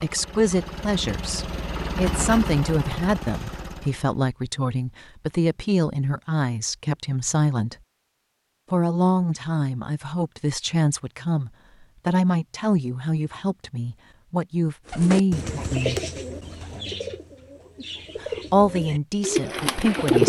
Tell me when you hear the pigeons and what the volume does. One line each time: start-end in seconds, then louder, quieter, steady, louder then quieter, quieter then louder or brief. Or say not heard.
14.9-20.2 quieter then louder.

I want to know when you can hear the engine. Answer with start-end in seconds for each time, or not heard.
0.0-4.2.